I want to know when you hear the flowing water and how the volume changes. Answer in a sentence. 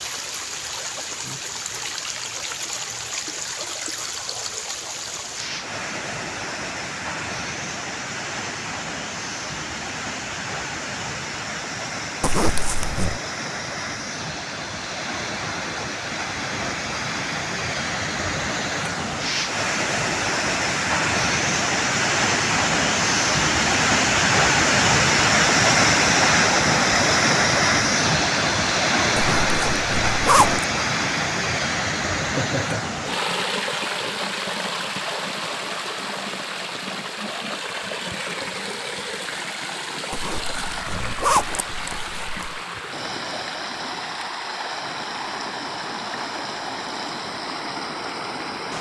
You can hear the flowing water from 0.0 to 48.7 s, getting louder then quieter.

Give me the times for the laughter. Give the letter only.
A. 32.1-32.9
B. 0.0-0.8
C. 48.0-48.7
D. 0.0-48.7
A.